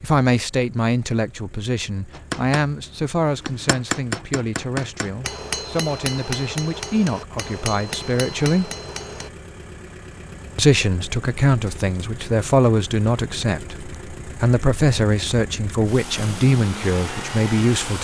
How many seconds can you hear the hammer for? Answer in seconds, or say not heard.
7 s.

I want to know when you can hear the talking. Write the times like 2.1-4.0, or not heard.
0.0-8.7, 10.6-17.9.